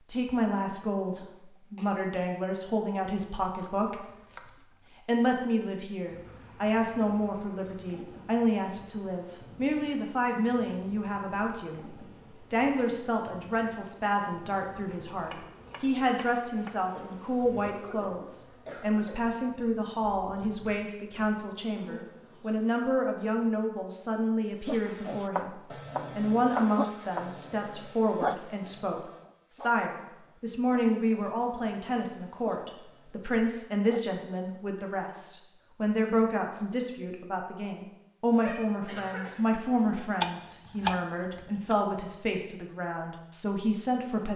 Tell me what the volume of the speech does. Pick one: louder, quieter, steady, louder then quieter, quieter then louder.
steady.